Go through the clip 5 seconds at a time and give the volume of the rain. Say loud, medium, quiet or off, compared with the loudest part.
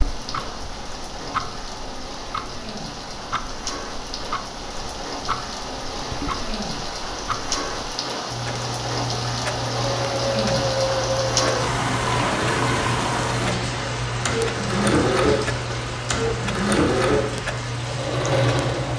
medium, loud, loud, medium.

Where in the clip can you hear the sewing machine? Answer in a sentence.
You can hear the sewing machine from 9.8 to 18.9 s.